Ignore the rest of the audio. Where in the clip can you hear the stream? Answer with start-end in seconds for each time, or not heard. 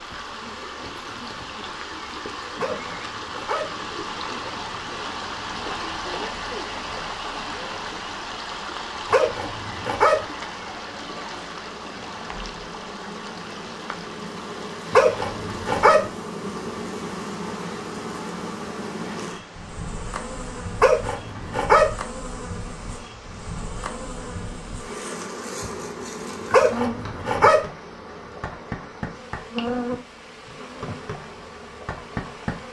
0.0-32.6.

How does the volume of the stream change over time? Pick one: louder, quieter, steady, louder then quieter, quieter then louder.
quieter.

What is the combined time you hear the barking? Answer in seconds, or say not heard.
6 s.